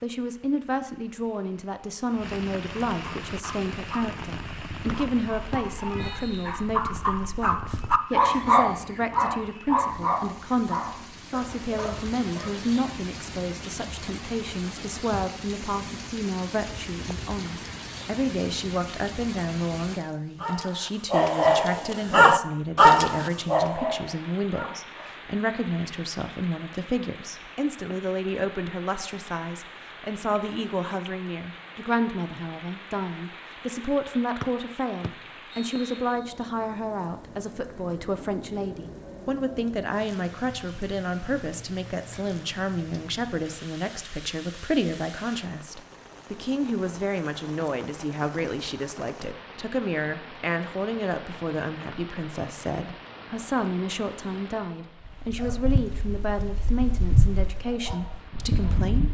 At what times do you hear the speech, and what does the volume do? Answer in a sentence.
You can hear the speech from 0.0 to 59.0 s, at a steady volume.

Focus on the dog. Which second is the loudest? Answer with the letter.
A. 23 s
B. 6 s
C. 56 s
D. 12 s
A.